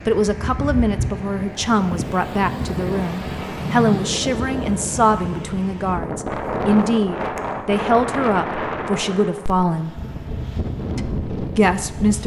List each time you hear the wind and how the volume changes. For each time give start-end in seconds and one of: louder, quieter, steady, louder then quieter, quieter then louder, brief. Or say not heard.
0.0-12.2 steady.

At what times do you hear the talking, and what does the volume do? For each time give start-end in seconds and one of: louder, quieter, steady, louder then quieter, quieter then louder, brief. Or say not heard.
0.1-9.9 steady
10.9-12.2 brief.